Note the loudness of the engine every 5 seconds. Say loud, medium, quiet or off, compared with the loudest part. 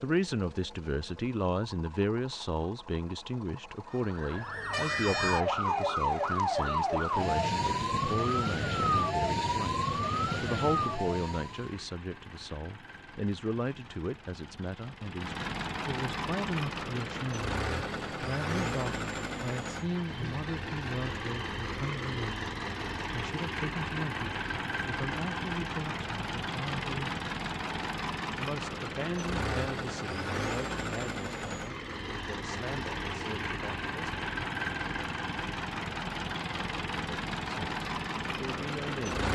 quiet, quiet, quiet, loud, loud, loud, loud, loud.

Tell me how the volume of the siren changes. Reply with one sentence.
The loudness of the siren stays about the same.